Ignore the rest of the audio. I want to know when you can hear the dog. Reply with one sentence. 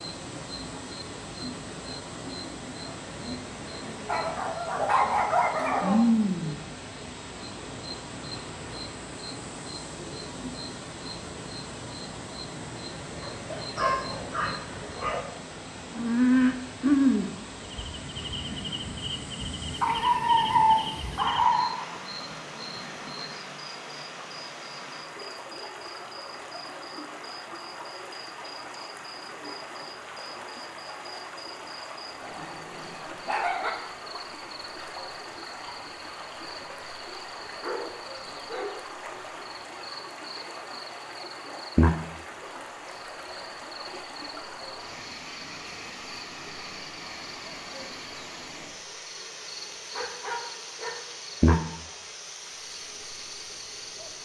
You can hear the dog from 4.0 to 6.0 s, from 13.2 to 15.2 s, from 19.8 to 21.7 s, from 32.2 to 33.7 s, from 37.6 to 38.8 s and from 49.9 to 51.8 s.